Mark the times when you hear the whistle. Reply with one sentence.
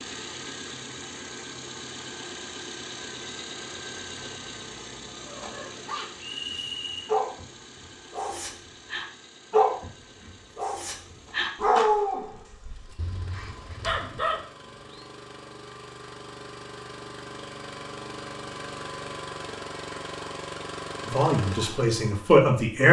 The whistle can be heard from 6.2 to 7.0 s.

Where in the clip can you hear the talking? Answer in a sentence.
The talking can be heard from 21.1 to 22.8 s.